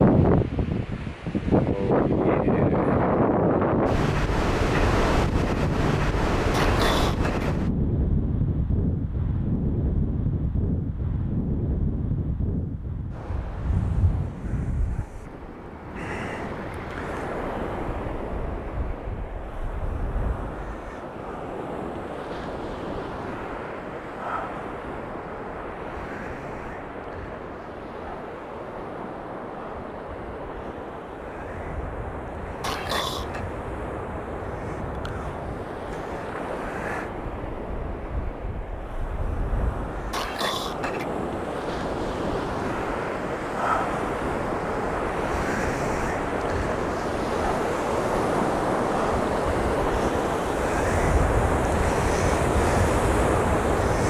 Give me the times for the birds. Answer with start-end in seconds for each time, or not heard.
not heard.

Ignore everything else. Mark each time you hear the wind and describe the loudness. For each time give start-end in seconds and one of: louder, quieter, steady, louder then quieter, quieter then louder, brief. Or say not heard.
0.0-54.0 quieter then louder.